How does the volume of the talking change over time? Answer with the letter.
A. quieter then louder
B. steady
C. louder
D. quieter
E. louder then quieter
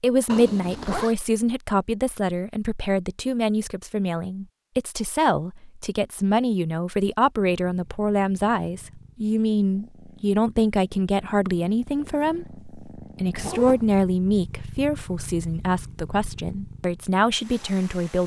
B.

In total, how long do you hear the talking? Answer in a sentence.
You can hear the talking for 18 seconds altogether.